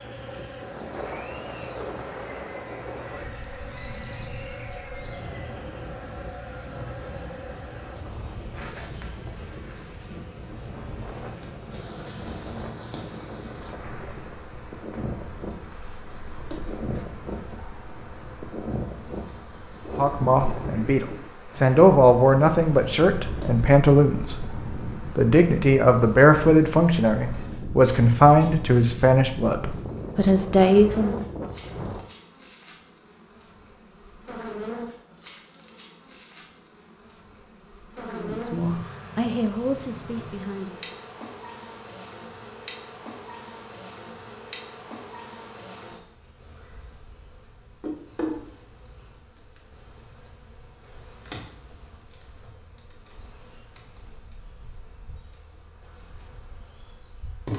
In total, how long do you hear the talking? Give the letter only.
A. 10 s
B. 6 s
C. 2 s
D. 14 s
D.